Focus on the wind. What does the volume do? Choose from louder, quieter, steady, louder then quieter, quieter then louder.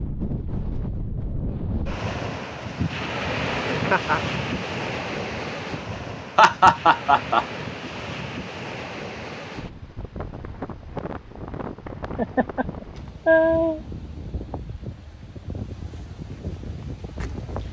quieter.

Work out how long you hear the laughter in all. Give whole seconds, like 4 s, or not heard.
4 s.